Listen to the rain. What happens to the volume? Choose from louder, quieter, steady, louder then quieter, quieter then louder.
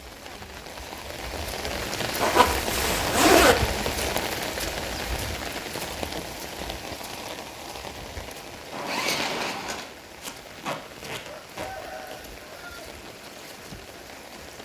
quieter.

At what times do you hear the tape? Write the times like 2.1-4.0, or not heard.
10.2-11.7.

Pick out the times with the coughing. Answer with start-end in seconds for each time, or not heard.
not heard.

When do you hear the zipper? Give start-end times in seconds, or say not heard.
2.2-3.5, 8.7-9.9.